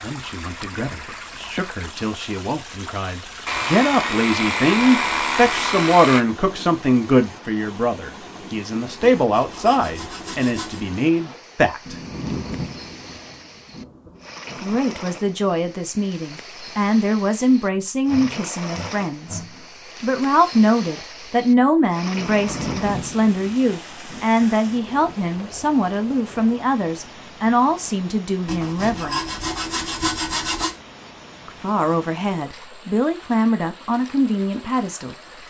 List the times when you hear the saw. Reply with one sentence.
The saw can be heard from 3.5 to 6.2 s, from 9.0 to 10.8 s, from 18.1 to 19.7 s and from 28.4 to 30.8 s.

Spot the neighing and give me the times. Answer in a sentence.
The neighing can't be heard in this clip.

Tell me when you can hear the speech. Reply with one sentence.
You can hear the speech from 0.0 to 11.9 s, from 14.6 to 29.2 s and from 31.4 to 35.1 s.